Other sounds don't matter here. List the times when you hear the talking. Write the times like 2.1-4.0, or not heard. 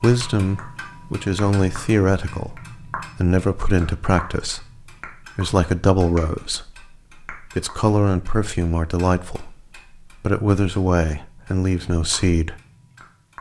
0.0-4.7, 5.3-6.8, 7.4-9.6, 10.2-12.6.